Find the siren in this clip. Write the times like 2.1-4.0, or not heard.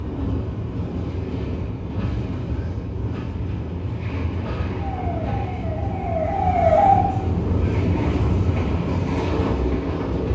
4.8-7.0.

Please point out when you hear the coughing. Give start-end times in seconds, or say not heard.
not heard.